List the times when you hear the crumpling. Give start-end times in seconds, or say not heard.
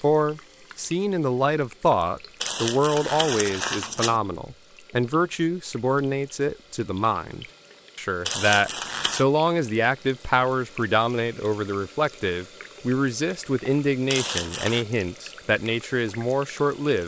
2.4-4.2, 8.2-9.2, 14.1-14.8.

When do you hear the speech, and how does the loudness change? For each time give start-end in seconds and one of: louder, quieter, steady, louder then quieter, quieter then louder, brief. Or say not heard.
0.0-17.0 steady.